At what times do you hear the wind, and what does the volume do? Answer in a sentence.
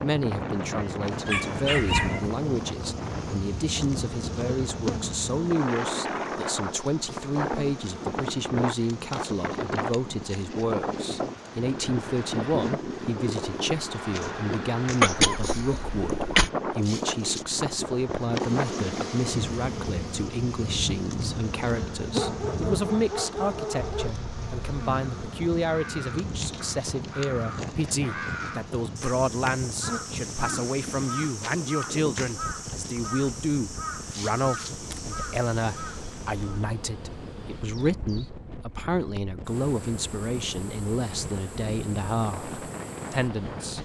The wind can be heard from 0.0 to 43.8 s, getting quieter.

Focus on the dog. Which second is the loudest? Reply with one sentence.
The volume of the dog peaks at 2 seconds.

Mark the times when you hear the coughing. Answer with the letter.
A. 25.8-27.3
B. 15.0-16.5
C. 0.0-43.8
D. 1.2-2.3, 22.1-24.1
B.